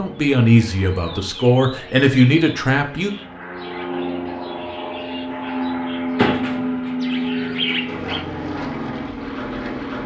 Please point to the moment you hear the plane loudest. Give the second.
7 s.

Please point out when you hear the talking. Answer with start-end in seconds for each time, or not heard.
0.0-3.1.